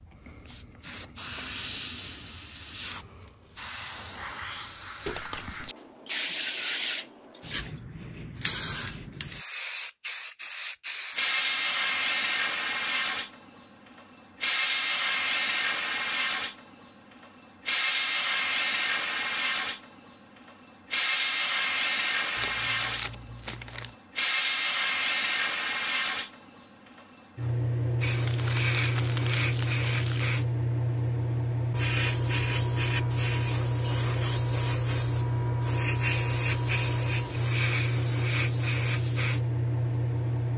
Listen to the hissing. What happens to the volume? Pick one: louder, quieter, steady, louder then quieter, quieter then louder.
louder.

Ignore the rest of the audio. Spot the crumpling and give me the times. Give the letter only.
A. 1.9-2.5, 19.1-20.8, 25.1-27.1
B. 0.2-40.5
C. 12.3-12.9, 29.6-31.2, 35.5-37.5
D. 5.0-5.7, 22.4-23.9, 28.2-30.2
D.